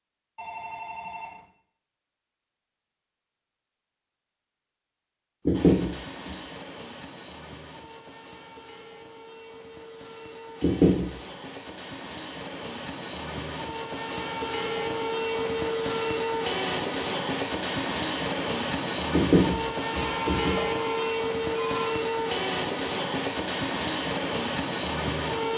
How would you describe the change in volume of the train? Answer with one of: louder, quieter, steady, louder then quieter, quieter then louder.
louder.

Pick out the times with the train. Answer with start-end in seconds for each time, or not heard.
5.5-25.5.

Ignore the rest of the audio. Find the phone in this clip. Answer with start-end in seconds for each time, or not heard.
0.3-1.4, 20.0-21.9.